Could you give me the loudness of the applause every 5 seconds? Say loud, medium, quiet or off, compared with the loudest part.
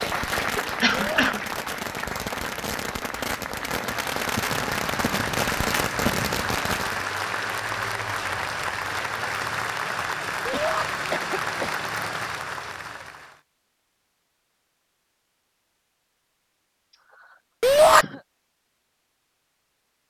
loud, loud, loud, off.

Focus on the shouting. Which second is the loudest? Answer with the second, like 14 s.
18 s.